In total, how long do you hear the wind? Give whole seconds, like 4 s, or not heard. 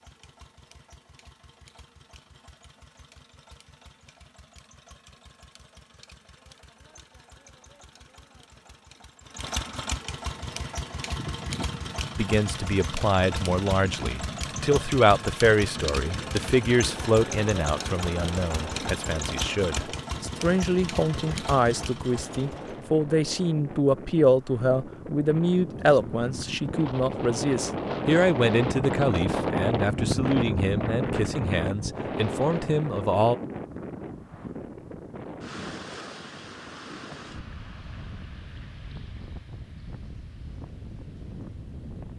32 s.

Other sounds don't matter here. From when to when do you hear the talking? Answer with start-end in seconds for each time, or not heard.
12.2-33.4.